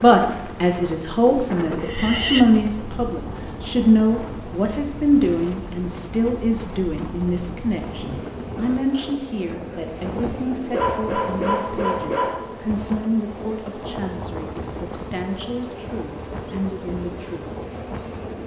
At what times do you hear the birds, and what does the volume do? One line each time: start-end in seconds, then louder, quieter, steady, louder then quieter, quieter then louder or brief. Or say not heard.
not heard.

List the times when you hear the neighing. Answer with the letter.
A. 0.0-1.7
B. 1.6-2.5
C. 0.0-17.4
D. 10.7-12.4
B.